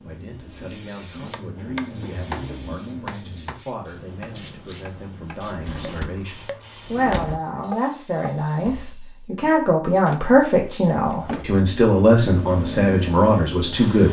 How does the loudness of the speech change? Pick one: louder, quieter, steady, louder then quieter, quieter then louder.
louder.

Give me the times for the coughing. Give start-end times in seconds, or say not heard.
not heard.